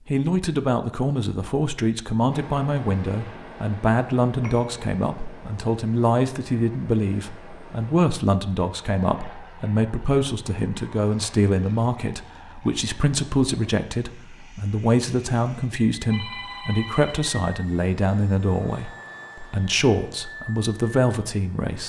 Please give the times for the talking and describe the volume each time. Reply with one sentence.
The talking can be heard from 0.1 to 21.8 s, at a steady volume.